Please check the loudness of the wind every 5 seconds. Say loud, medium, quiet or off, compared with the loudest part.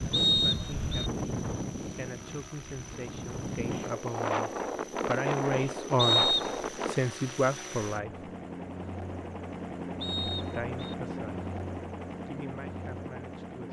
loud, loud, off.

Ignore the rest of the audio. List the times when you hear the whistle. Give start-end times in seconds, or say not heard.
0.1-1.1, 6.0-6.5, 10.0-10.9.